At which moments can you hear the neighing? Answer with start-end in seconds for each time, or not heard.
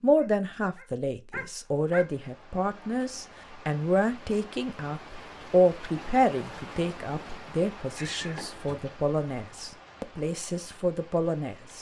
8.0-8.8.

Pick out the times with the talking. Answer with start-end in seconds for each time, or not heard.
0.0-11.7.